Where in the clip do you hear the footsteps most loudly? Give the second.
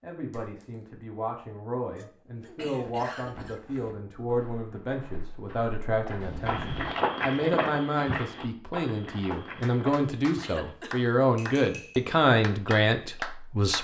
7 s.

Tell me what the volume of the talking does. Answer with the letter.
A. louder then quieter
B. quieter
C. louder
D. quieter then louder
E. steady
C.